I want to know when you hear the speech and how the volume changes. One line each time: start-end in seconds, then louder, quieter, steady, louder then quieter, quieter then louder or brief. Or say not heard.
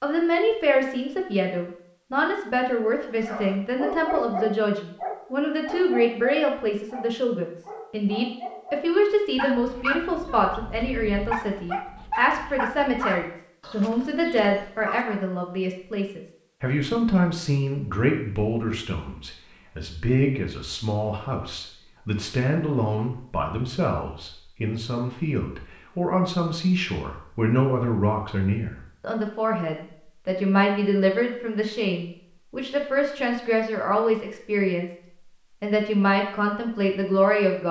0.0-34.9 steady
35.6-37.6 brief.